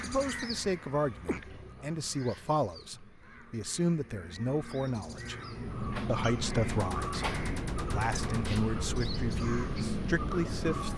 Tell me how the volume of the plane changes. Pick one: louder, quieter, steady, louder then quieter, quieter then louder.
steady.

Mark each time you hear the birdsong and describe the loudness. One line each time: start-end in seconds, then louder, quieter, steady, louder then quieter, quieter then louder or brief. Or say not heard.
0.0-10.9 quieter then louder.